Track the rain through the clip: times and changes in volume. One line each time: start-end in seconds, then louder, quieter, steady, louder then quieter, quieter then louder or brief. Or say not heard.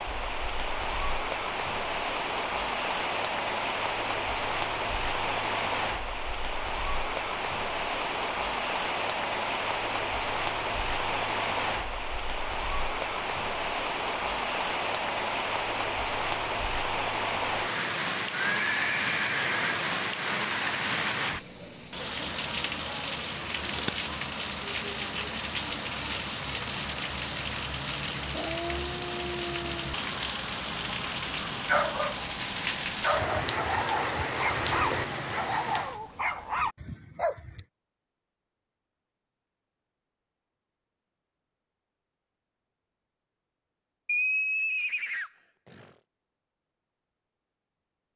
0.0-36.0 steady.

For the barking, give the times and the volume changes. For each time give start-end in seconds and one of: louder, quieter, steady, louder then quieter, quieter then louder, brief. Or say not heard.
31.6-37.6 steady.